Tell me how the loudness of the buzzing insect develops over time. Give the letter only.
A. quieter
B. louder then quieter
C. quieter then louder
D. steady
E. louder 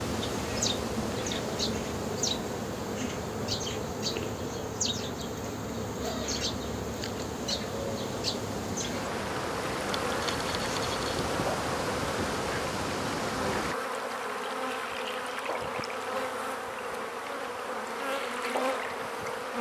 D.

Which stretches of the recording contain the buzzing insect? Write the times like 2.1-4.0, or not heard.
0.0-19.5.